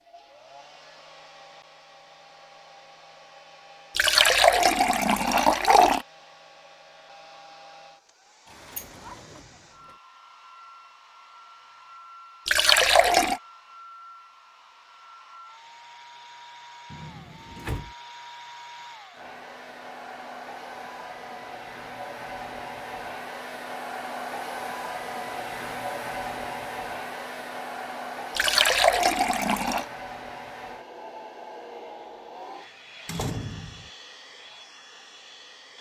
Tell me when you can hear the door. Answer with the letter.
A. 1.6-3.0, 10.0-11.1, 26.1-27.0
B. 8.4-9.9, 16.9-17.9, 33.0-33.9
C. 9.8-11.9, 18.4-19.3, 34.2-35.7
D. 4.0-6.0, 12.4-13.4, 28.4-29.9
B.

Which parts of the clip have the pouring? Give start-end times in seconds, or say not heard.
4.0-6.0, 12.4-13.4, 28.4-29.9.